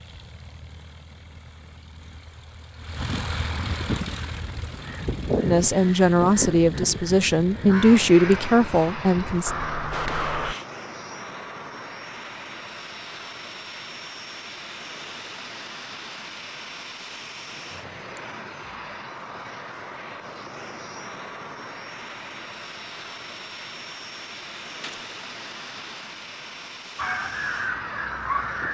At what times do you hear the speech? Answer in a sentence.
The speech can be heard from 5.4 to 9.5 s.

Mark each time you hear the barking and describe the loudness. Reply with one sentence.
You can't hear the barking here.